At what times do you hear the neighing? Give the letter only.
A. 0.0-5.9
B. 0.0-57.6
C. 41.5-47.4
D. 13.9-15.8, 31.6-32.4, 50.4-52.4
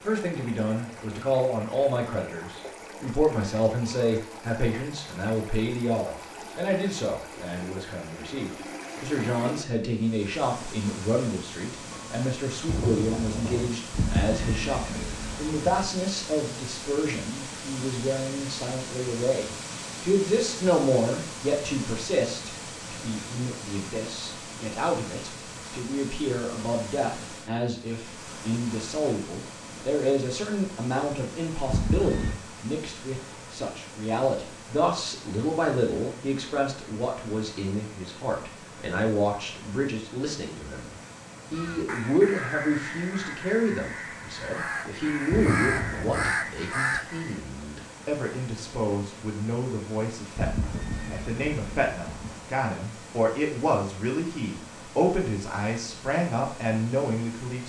D.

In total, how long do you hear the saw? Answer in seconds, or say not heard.
not heard.